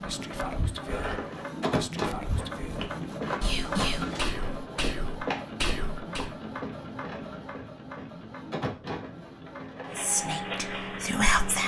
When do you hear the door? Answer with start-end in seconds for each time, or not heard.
3.4-4.2.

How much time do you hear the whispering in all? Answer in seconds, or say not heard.
8 s.